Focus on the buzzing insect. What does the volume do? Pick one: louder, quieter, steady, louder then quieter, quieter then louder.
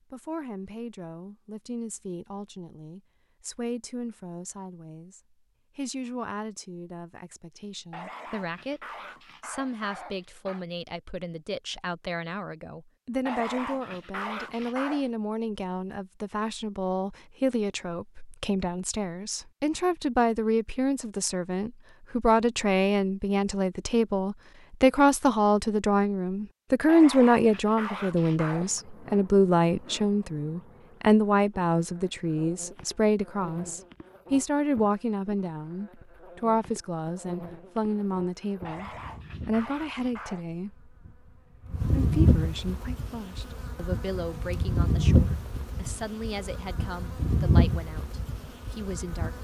louder.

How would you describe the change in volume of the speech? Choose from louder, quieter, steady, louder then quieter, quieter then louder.
louder then quieter.